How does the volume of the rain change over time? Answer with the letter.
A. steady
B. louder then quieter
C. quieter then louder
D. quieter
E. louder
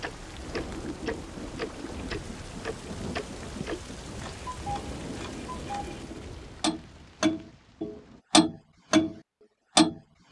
D.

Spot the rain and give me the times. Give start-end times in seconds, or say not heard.
0.0-8.2.